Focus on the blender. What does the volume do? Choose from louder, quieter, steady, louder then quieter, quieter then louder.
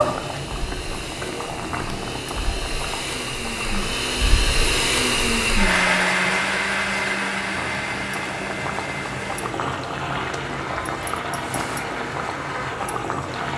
louder then quieter.